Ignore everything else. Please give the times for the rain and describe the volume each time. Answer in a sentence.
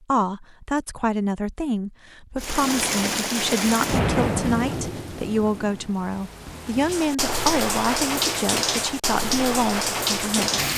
The rain can be heard from 2.4 to 10.7 s, getting quieter then louder.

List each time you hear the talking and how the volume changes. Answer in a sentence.
The talking can be heard from 0.1 to 10.7 s, at a steady volume.